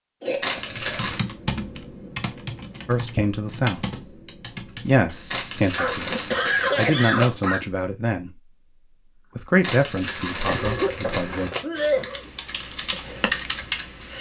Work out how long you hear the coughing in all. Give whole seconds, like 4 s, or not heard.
5 s.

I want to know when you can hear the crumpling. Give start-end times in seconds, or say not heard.
0.4-1.2, 5.3-7.3, 9.6-11.7.